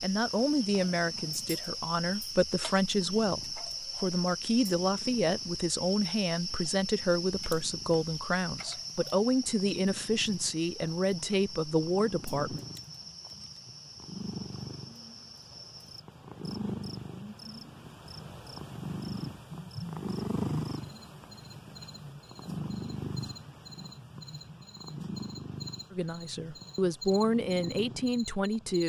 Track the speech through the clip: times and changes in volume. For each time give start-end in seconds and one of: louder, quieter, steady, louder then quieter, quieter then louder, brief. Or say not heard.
0.0-12.6 steady
25.9-28.8 brief.